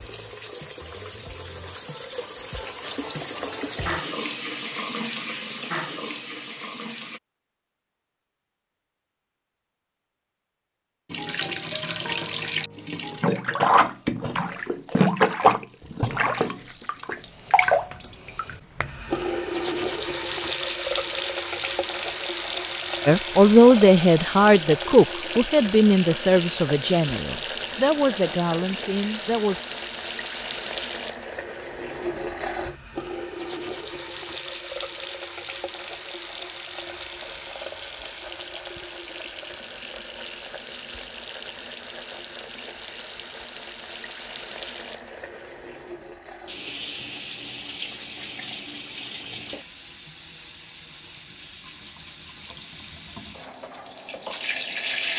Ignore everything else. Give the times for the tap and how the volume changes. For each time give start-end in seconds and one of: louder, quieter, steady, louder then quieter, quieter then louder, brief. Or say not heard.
0.0-7.2 louder
11.1-55.1 quieter.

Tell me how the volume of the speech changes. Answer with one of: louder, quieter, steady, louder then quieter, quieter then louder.
quieter.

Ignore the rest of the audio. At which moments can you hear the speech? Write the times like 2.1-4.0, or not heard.
23.1-29.6.